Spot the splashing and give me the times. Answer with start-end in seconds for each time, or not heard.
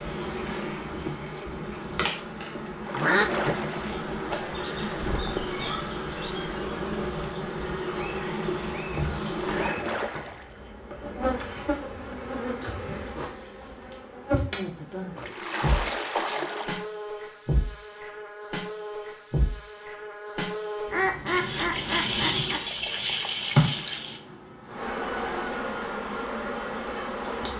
2.9-4.0, 9.3-10.6, 15.2-16.9, 21.2-24.2.